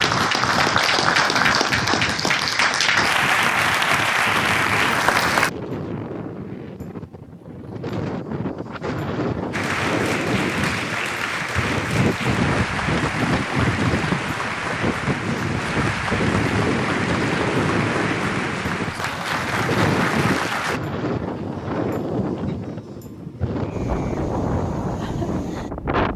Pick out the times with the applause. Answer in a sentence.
The applause can be heard from 0.0 to 5.5 s and from 9.5 to 20.8 s.